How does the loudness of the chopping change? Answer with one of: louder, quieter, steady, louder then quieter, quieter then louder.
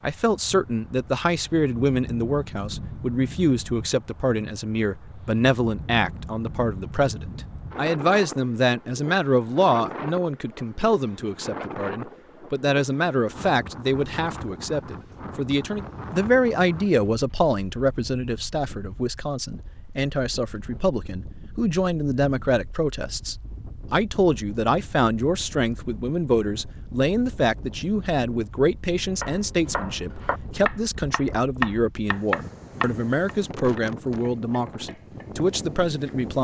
louder then quieter.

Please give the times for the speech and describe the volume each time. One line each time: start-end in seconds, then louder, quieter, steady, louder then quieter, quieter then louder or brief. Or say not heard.
0.0-36.3 steady.